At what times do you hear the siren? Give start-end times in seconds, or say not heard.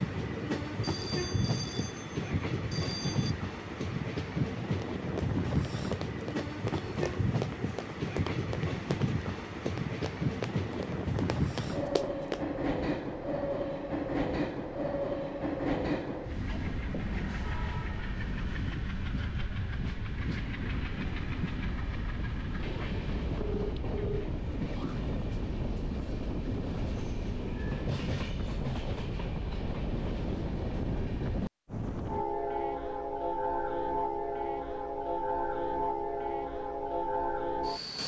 not heard.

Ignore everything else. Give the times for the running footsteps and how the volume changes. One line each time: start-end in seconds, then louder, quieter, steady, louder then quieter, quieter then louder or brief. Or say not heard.
4.8-12.4 steady.